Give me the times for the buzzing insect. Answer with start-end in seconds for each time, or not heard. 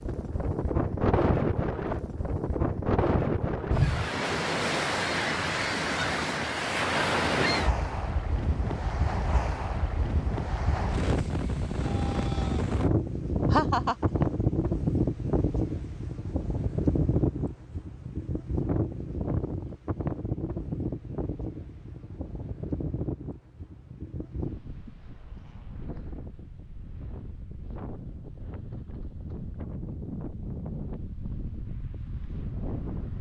not heard.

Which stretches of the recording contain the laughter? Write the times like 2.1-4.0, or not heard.
13.5-14.2.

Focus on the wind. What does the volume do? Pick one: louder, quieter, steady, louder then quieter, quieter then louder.
quieter.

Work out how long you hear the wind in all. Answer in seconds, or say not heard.
33 s.